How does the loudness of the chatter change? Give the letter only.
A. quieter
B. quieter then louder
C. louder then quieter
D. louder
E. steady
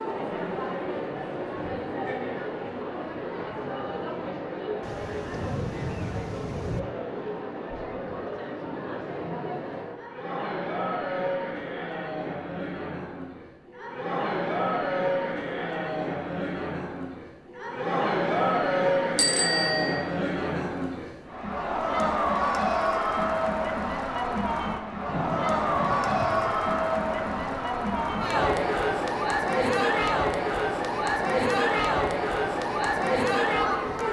D.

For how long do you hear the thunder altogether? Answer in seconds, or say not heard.
5 s.